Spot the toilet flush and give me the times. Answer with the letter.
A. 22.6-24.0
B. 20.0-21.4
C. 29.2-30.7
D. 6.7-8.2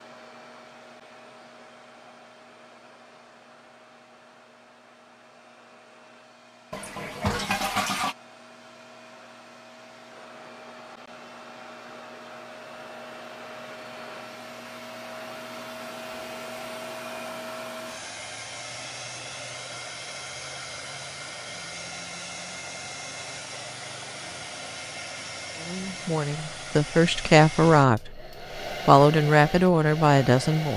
D.